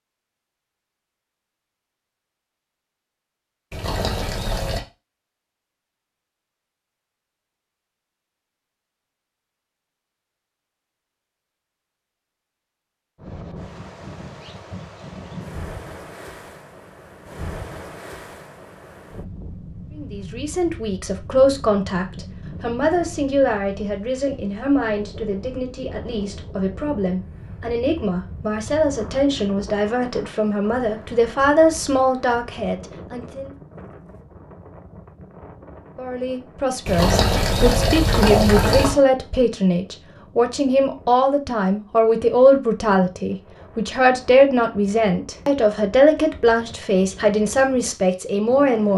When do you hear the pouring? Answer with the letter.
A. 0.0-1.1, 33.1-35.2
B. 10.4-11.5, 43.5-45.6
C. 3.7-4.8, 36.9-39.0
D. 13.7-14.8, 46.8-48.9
C.